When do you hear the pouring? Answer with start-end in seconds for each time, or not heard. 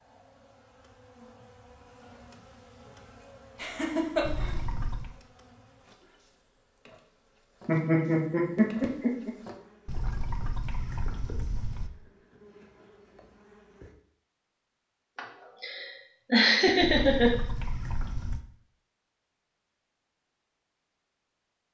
4.2-5.2, 9.8-11.9, 16.8-18.4.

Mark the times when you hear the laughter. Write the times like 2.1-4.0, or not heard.
3.6-4.5, 7.7-9.3, 15.2-17.3.